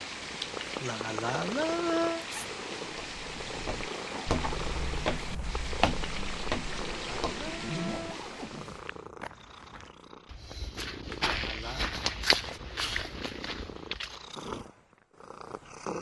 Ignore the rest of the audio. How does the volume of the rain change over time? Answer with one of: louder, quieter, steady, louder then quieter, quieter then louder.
steady.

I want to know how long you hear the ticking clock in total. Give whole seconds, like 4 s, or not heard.
not heard.